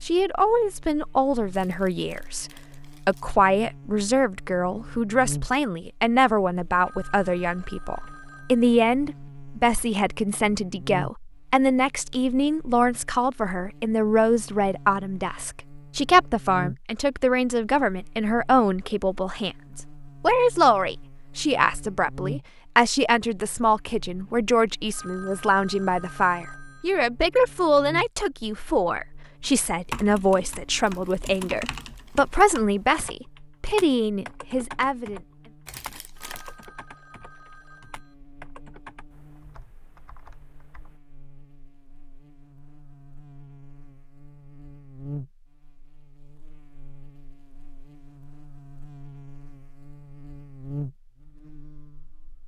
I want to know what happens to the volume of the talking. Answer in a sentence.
The loudness of the talking stays about the same.